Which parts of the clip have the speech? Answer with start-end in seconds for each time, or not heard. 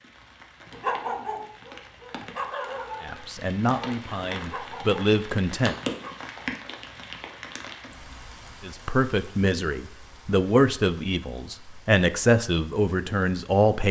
3.0-5.8, 8.6-13.8.